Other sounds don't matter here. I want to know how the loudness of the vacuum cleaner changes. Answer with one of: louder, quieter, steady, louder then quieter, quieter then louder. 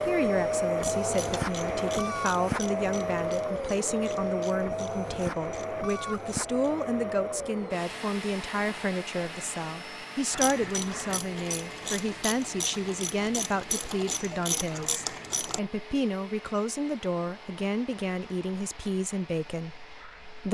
quieter.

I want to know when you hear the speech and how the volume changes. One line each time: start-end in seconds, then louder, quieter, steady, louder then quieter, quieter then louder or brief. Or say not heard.
0.0-20.4 steady.